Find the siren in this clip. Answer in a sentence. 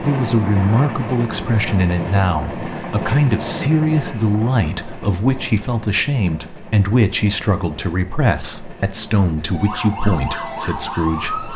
You can hear the siren from 9.5 to 11.5 s.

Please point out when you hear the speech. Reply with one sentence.
The speech can be heard from 0.0 to 11.5 s.